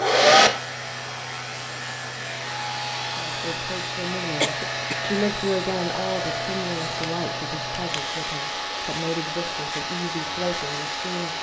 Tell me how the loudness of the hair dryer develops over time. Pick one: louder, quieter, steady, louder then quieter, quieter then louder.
steady.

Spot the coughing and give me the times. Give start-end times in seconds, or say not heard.
4.4-5.1.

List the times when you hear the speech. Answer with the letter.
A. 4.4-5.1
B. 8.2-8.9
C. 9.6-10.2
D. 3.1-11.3
D.